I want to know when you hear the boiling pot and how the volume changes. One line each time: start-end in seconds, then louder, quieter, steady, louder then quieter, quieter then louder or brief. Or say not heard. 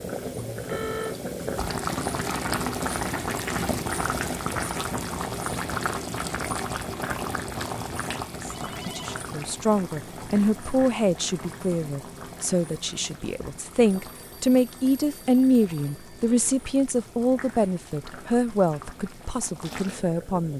0.0-20.5 quieter.